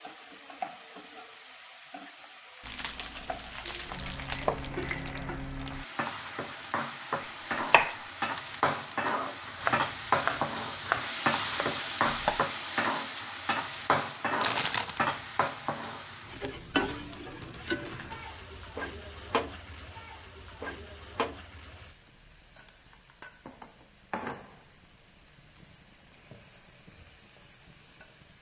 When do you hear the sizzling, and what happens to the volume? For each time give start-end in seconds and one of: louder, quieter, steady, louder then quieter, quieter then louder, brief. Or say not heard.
0.0-28.3 louder then quieter.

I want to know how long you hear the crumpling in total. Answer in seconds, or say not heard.
3 s.